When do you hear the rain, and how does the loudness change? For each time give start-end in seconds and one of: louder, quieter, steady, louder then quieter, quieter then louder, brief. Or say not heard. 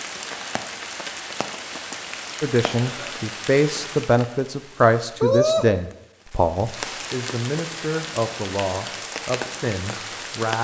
0.0-10.6 louder then quieter.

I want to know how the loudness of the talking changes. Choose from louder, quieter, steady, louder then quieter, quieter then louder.
quieter.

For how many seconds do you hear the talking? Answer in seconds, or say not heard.
8 s.